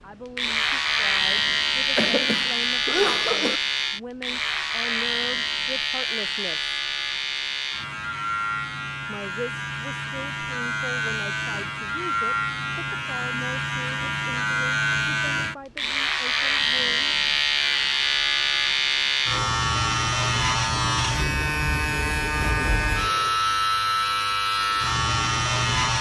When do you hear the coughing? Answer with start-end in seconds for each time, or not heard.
1.9-3.6.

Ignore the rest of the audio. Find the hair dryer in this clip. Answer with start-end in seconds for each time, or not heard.
not heard.